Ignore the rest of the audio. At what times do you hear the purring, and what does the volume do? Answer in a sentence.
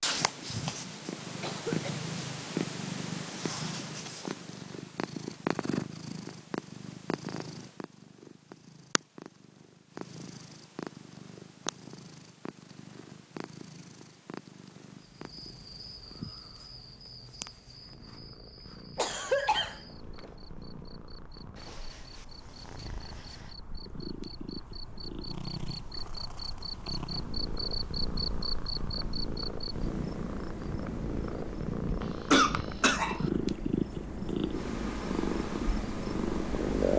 The purring can be heard from 0.0 to 36.9 s, getting quieter then louder.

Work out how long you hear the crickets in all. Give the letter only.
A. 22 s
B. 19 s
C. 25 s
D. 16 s
A.